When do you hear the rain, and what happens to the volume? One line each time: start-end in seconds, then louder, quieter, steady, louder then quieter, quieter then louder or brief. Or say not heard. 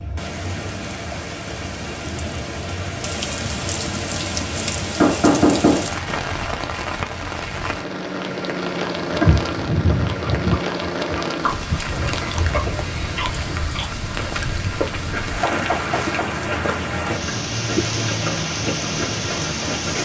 0.0-19.9 steady.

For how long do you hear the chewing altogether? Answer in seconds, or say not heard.
11 s.